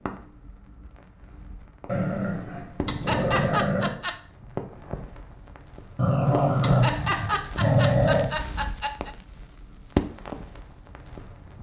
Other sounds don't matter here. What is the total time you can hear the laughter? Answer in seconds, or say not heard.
4 s.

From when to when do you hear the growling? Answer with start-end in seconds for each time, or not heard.
1.9-3.9, 6.0-8.3.